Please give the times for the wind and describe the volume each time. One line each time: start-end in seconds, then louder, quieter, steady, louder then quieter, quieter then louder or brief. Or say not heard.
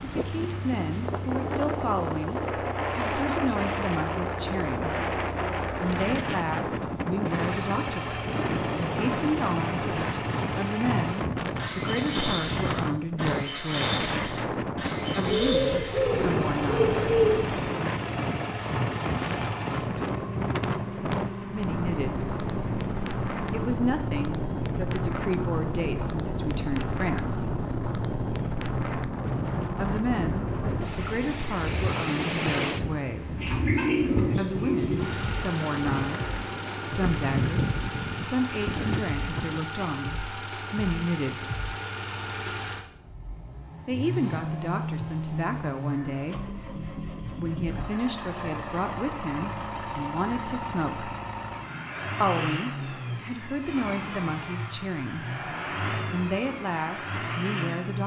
0.0-39.7 steady.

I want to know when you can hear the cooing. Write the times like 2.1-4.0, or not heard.
15.2-17.6, 33.4-35.1.